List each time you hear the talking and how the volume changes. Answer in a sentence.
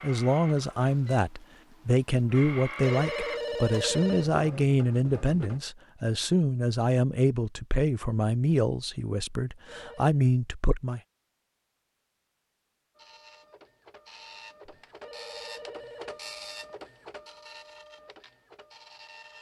The talking can be heard from 0.0 to 11.0 s, at a steady volume.